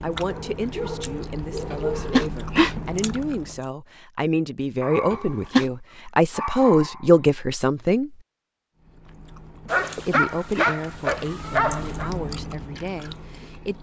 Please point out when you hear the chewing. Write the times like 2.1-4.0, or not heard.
0.0-3.7, 8.8-13.7.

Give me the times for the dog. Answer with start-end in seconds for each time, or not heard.
0.2-2.3, 4.8-5.5, 6.3-7.2, 9.7-12.1.